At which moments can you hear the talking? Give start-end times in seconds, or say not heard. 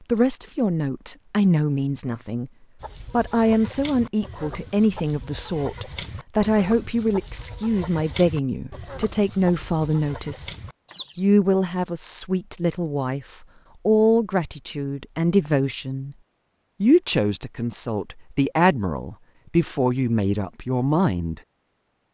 0.1-2.5, 3.1-10.4, 11.2-16.1, 16.8-21.4.